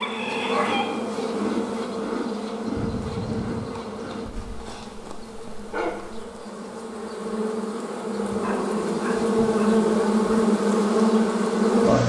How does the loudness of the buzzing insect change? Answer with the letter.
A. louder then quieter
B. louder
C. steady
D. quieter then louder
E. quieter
D.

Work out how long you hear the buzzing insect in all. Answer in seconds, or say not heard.
12 s.